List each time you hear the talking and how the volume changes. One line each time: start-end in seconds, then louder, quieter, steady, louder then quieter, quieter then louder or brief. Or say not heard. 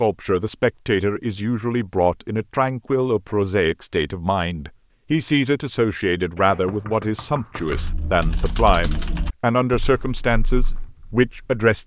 0.0-11.8 steady.